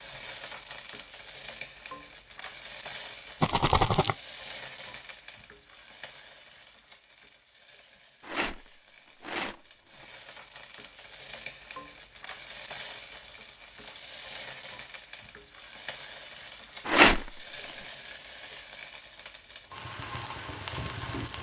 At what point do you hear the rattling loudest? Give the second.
17 s.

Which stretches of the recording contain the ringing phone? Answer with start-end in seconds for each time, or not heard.
not heard.